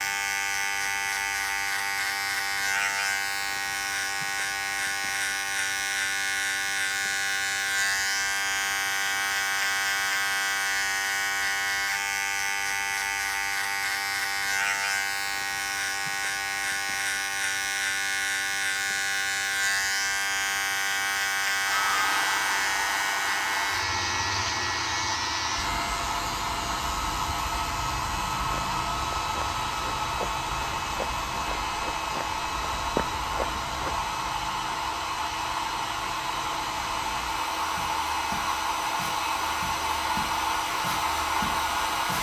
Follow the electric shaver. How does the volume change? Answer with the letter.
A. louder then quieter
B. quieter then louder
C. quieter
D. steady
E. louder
C.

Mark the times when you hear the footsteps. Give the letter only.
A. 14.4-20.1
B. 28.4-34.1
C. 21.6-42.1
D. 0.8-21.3
B.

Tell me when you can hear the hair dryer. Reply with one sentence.
The hair dryer can be heard from 21.6 to 42.1 s.